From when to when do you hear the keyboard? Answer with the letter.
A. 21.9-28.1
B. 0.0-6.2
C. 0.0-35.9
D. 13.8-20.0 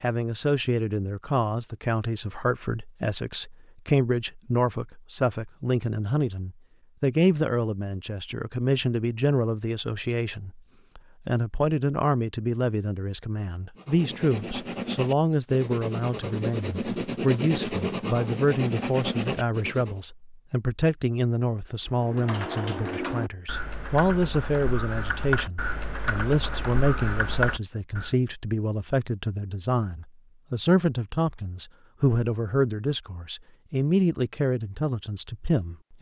A.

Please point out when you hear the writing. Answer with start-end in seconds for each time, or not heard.
13.8-20.0.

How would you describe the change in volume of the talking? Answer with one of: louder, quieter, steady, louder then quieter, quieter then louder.
steady.